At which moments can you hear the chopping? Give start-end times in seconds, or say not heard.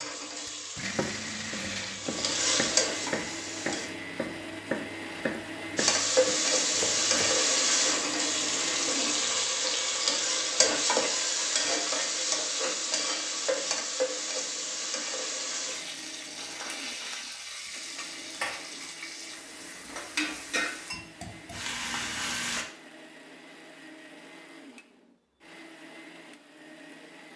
0.8-7.4.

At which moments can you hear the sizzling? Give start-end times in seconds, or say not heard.
0.0-3.9, 5.8-22.6.